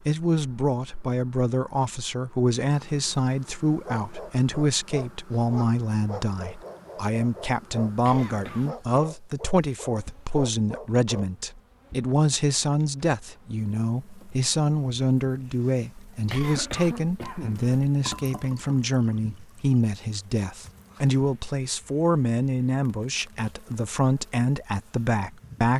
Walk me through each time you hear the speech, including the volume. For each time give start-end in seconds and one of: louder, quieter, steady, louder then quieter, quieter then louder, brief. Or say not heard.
0.1-25.7 steady.